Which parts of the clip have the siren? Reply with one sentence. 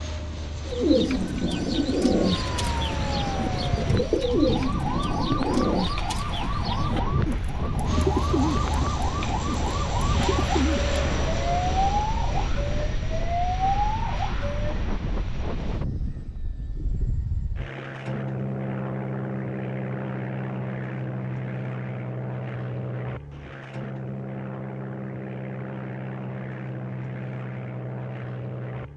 You can hear the siren from 2.1 to 14.8 s.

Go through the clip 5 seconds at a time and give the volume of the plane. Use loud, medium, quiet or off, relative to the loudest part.
medium, loud, loud, loud, loud, loud.